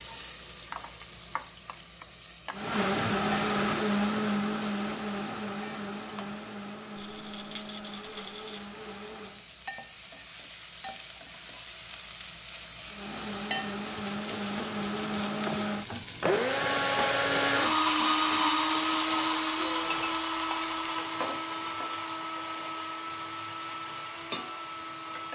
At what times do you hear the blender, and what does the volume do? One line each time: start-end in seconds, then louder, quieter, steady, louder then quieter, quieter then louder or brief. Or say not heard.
2.5-9.4 quieter
12.8-25.3 louder then quieter.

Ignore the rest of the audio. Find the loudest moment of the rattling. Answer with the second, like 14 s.
8 s.